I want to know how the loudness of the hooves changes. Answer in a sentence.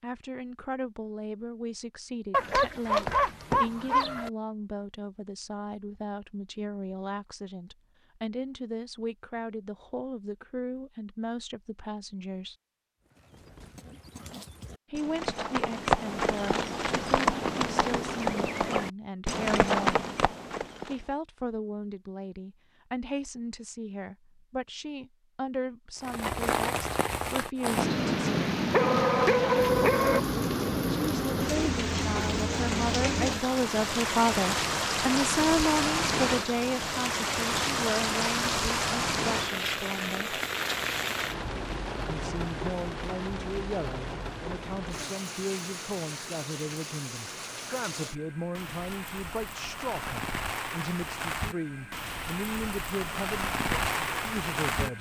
The volume of the hooves goes up.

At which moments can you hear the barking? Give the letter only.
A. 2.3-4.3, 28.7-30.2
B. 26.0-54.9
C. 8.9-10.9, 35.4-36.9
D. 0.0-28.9
A.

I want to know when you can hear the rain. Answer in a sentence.
The rain can be heard from 26.0 to 54.9 s.